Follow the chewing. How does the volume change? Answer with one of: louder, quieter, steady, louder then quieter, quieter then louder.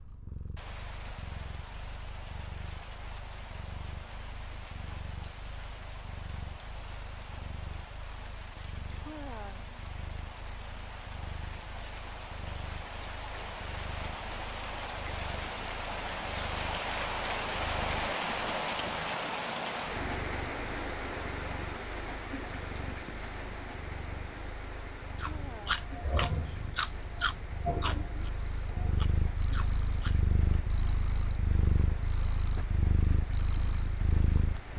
quieter.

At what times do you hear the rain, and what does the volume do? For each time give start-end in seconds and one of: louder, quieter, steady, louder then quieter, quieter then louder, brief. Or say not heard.
0.0-34.7 louder then quieter.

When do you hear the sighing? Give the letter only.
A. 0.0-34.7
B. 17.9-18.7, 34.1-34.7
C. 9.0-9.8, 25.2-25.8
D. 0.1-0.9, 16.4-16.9
C.